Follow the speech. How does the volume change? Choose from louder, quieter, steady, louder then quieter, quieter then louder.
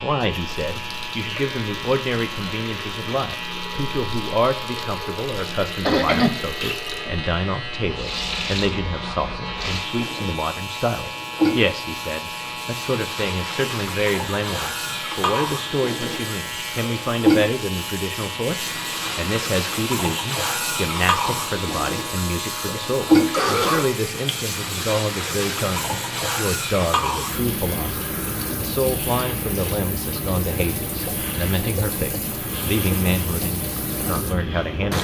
steady.